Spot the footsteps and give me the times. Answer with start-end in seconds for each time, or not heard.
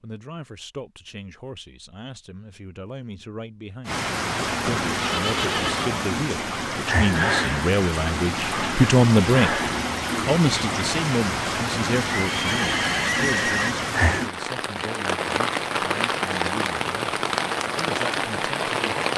not heard.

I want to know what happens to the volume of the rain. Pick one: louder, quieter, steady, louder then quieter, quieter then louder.
steady.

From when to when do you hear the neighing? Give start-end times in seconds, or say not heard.
4.6-6.0, 12.1-13.8.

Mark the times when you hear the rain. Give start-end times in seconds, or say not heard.
3.9-19.1.